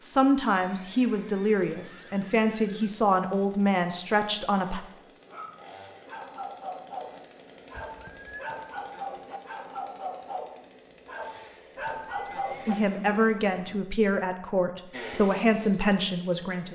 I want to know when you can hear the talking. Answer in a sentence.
You can hear the talking from 0.0 to 4.8 s and from 12.7 to 16.7 s.